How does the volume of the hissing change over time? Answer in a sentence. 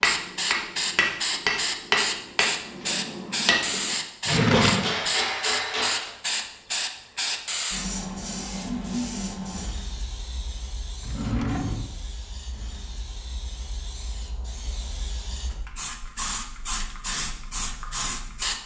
The loudness of the hissing goes down, then up.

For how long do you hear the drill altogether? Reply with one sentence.
The drill can't be heard in this clip.